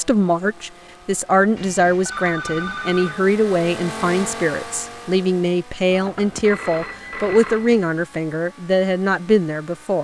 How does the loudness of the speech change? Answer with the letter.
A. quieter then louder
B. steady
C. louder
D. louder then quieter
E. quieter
B.